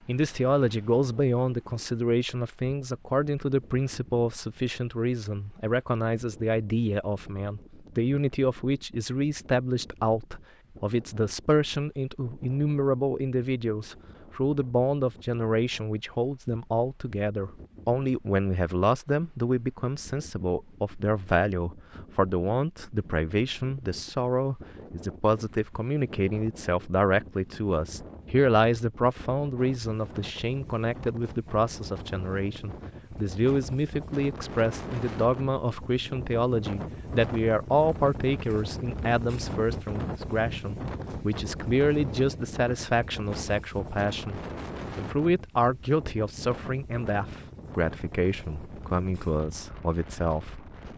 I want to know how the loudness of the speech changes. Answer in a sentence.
The volume of the speech stays about the same.